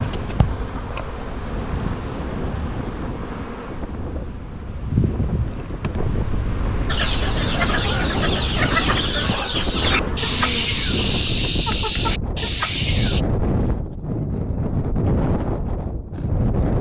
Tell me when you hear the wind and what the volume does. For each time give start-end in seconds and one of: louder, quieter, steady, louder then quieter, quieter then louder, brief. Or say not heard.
0.0-16.7 louder.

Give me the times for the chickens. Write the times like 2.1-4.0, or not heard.
6.8-13.2.